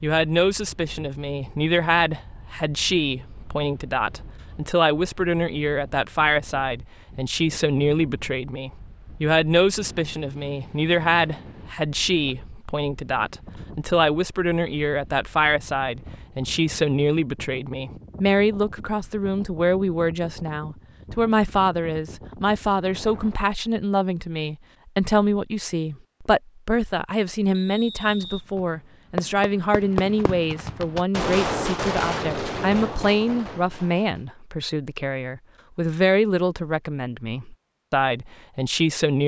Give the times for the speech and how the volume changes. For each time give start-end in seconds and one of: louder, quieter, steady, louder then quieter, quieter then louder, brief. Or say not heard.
0.0-39.2 steady.